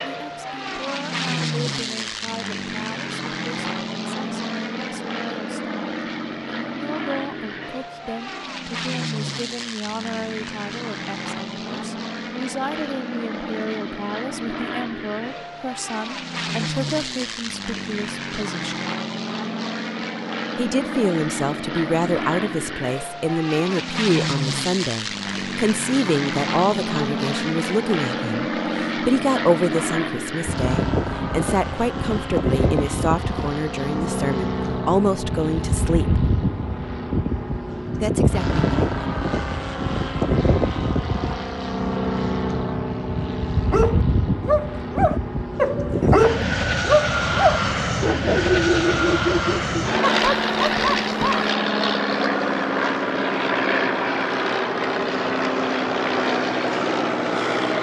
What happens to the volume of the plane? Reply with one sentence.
The loudness of the plane goes up.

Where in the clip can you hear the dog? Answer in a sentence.
The dog can be heard from 43.7 to 51.5 s.